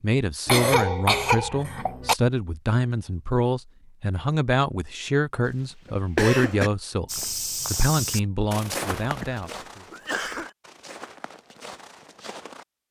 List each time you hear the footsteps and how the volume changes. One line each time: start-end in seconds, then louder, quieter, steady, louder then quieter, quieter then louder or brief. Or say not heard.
7.0-12.7 quieter.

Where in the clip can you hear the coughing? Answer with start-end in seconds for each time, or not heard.
0.5-2.1, 5.8-6.7, 9.0-10.5.